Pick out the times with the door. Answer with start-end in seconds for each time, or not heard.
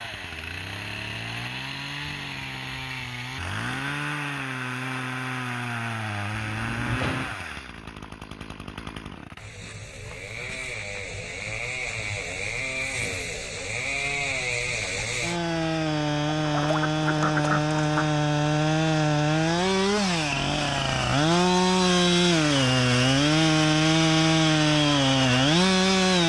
6.3-7.3.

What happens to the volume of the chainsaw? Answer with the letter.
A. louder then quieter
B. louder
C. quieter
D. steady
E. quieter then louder
B.